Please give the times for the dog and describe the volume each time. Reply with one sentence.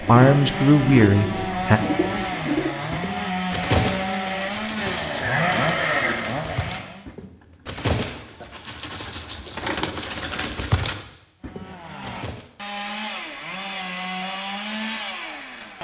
The dog can't be heard in this clip.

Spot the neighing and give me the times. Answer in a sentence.
The neighing can be heard from 5.2 to 6.2 s.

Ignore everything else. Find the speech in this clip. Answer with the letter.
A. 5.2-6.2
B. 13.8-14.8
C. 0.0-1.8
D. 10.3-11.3
C.